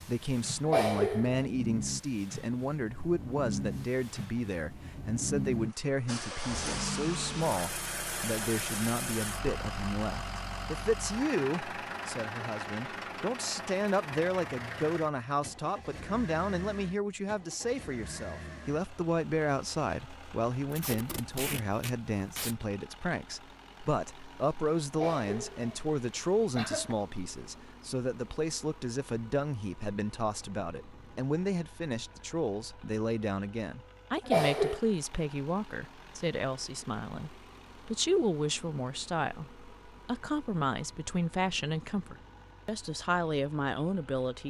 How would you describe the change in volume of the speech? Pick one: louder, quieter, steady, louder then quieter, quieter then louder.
steady.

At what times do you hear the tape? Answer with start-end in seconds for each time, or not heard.
20.7-22.6.